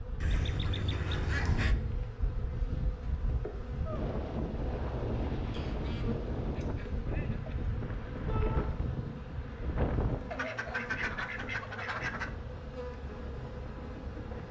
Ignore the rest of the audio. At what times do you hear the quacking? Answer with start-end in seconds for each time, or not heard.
0.2-1.8, 5.5-7.5, 10.3-12.3.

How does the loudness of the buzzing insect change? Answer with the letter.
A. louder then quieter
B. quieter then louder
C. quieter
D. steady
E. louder
D.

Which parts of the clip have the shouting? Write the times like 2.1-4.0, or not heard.
8.2-8.7.